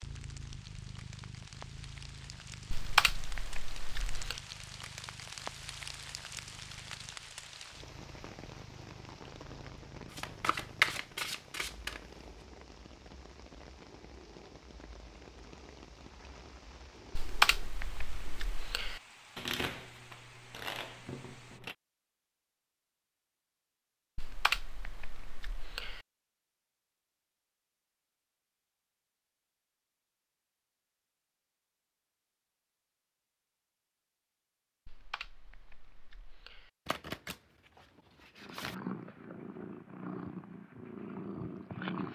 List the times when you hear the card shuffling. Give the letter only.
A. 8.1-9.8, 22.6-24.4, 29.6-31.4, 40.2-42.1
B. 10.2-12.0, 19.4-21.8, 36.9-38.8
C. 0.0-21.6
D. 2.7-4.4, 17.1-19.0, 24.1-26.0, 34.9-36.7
B.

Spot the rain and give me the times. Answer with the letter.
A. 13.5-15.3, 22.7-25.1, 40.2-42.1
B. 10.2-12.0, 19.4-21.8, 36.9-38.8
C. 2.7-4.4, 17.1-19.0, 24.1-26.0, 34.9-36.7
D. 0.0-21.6
D.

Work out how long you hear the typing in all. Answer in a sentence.
You can hear the typing for 7 seconds altogether.